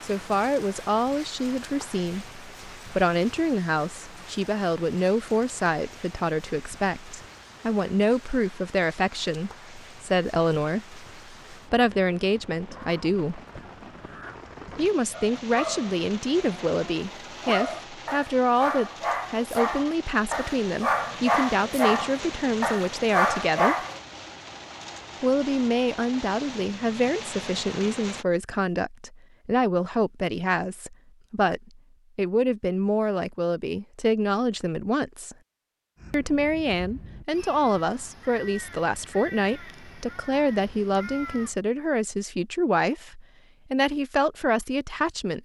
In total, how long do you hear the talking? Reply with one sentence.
The talking can be heard for 42 seconds in total.